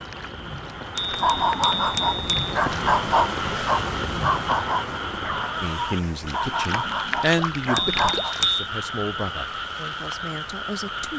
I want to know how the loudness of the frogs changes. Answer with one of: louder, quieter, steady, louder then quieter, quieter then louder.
louder.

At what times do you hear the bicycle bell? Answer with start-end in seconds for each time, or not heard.
0.9-2.5, 7.8-8.7.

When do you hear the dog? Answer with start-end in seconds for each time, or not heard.
1.1-8.3.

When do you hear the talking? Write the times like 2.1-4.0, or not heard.
5.6-11.1.